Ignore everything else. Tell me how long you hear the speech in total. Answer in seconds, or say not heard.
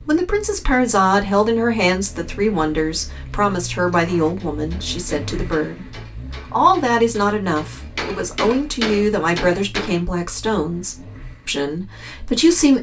13 s.